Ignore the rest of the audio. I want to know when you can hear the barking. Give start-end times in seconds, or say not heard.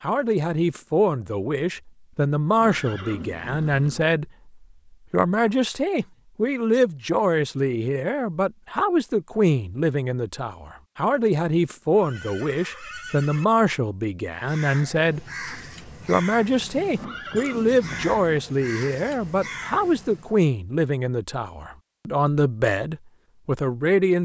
not heard.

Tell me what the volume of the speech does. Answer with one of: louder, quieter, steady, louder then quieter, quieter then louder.
steady.